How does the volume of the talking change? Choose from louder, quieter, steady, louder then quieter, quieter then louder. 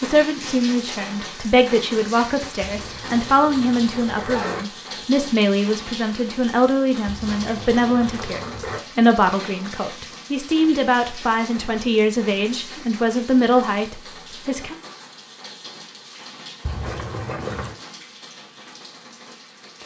steady.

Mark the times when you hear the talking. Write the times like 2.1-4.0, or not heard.
0.0-14.8.